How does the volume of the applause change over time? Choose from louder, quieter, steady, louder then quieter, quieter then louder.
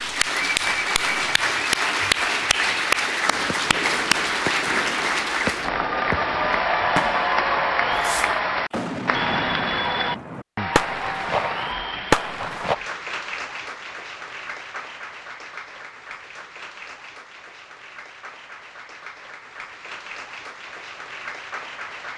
quieter.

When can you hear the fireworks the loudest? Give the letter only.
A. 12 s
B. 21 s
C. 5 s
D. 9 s
A.